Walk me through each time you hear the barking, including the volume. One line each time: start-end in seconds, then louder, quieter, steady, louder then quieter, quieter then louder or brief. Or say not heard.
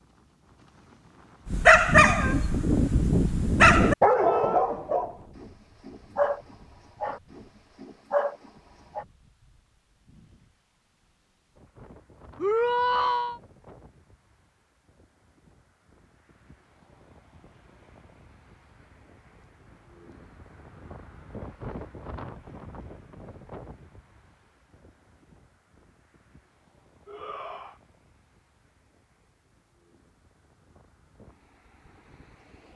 1.4-9.1 quieter.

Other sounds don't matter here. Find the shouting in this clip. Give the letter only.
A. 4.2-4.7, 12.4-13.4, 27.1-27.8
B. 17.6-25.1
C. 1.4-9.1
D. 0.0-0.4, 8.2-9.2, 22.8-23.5
A.